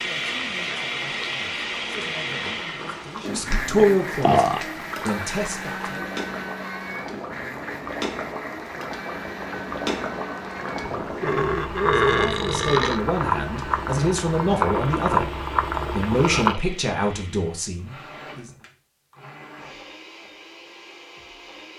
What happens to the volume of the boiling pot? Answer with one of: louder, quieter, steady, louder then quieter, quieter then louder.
louder.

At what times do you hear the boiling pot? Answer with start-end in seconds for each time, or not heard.
0.1-16.6.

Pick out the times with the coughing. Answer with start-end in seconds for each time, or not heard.
not heard.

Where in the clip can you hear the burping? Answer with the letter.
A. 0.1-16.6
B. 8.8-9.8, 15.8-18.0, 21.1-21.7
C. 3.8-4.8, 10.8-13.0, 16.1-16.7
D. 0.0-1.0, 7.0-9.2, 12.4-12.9
C.